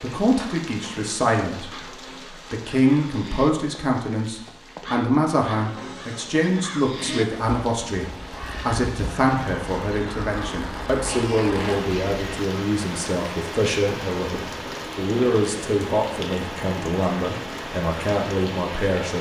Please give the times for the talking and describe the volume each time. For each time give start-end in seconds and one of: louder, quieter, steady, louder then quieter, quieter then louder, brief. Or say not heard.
0.0-1.9 brief
2.5-19.1 steady.